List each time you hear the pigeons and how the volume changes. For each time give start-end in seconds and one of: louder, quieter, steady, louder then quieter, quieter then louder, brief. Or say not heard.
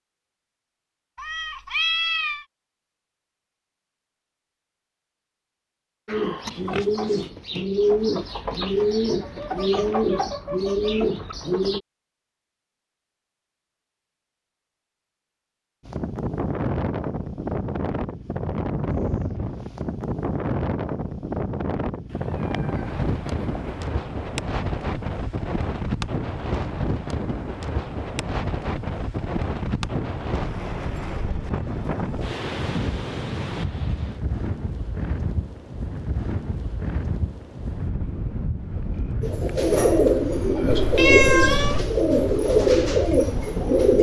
6.0-11.8 steady
39.2-43.9 steady.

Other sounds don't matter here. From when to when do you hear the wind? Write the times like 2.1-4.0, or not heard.
15.8-43.9.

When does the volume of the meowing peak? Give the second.
41 s.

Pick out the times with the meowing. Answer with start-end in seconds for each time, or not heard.
1.1-2.5, 22.1-23.6, 40.7-41.9.